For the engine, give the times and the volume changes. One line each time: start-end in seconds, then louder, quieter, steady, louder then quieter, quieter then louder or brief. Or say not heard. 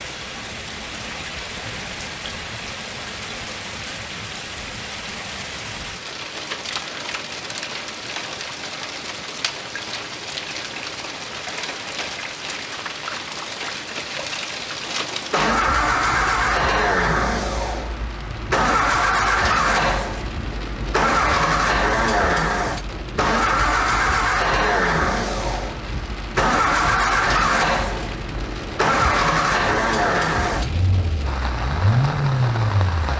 15.1-33.1 steady.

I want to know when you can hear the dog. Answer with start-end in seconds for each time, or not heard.
not heard.